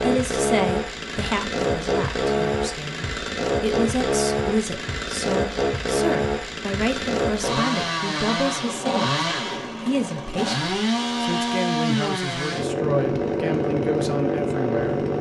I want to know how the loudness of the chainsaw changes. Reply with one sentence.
The volume of the chainsaw stays about the same.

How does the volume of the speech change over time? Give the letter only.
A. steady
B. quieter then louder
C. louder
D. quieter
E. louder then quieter
A.